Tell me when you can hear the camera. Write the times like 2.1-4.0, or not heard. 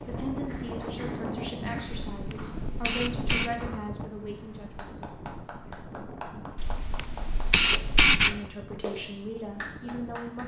2.1-3.5, 6.5-8.3.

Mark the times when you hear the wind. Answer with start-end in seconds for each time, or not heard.
0.0-10.4.